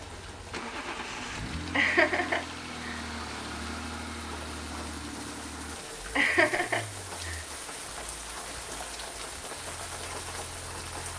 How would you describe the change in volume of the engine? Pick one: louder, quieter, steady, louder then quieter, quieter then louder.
quieter.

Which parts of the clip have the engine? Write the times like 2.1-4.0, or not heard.
0.0-11.1.